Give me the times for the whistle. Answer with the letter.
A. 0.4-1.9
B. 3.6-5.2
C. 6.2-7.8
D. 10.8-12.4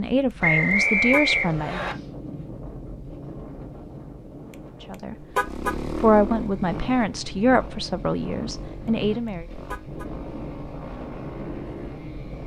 A.